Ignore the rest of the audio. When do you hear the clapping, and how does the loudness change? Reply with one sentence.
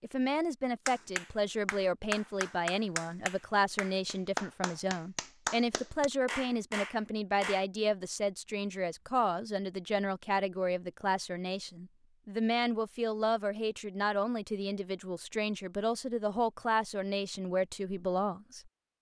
The clapping can be heard from 0.8 to 7.7 s, at a steady volume.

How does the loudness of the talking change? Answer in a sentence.
The loudness of the talking stays about the same.